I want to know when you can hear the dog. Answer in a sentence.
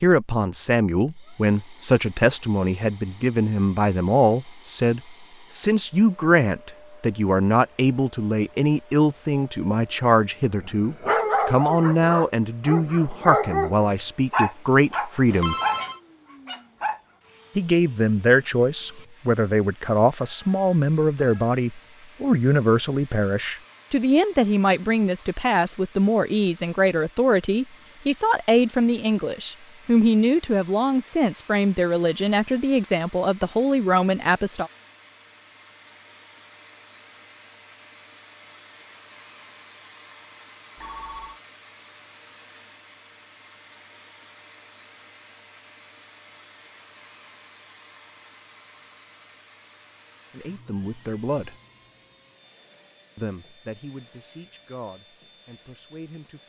You can hear the dog from 10.4 to 17.0 s.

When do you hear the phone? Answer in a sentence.
You can hear the phone from 15.3 to 16.0 s, from 20.1 to 21.6 s and from 40.8 to 41.4 s.